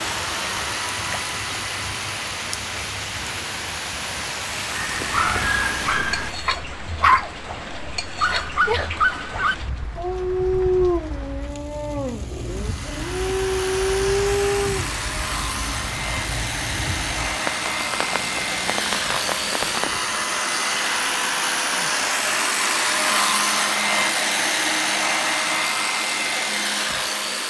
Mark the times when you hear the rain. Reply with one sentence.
You can hear the rain from 0.0 to 20.2 s.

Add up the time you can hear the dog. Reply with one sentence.
The dog can be heard for 10 seconds in total.